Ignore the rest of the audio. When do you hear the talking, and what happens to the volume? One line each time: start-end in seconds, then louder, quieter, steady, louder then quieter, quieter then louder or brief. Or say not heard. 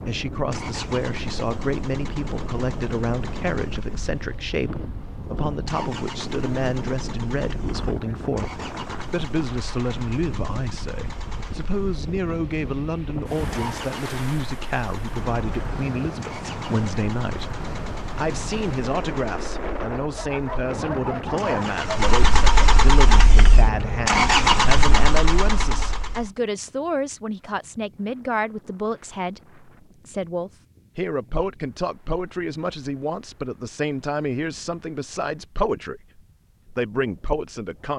0.1-37.9 steady.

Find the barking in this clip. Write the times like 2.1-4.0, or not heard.
20.1-22.1.